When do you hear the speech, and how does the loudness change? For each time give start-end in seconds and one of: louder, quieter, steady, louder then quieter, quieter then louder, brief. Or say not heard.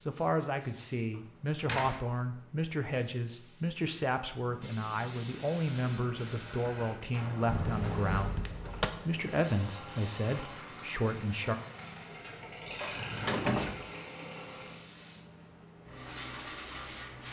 0.1-8.4 steady
9.0-11.6 brief.